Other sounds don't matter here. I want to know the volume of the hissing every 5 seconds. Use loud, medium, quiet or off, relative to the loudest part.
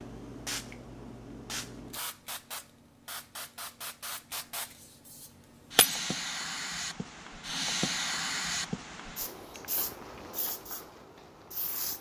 medium, loud, medium.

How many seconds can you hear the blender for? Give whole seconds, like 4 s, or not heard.
not heard.